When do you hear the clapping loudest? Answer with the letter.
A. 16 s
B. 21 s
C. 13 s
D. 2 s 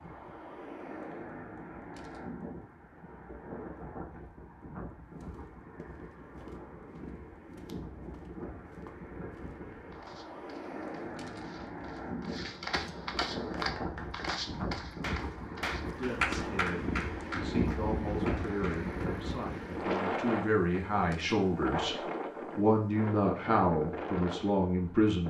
A.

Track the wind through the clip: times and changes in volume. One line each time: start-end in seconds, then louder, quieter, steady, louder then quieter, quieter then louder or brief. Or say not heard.
0.0-25.2 louder.